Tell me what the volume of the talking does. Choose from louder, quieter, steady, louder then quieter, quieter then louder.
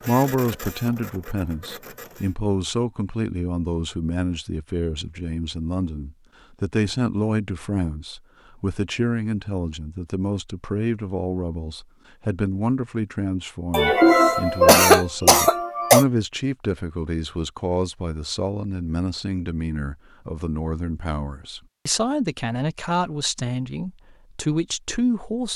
steady.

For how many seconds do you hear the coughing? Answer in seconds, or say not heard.
2 s.